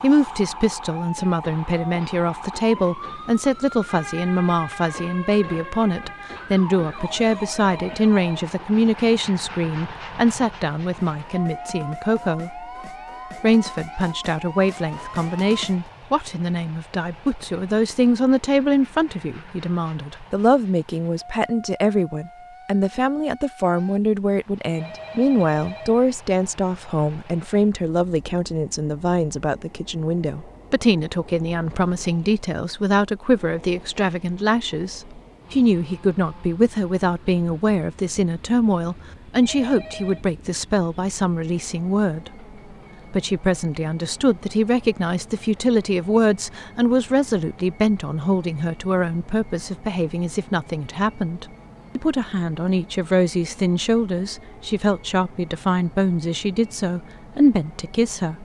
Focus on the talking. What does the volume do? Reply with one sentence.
The volume of the talking stays about the same.